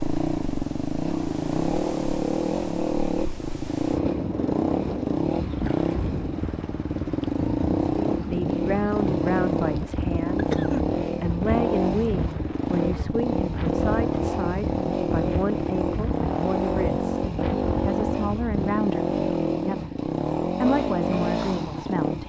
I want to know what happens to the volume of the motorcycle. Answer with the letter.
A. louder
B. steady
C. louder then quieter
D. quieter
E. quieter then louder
B.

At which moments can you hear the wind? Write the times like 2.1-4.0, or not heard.
0.0-18.7.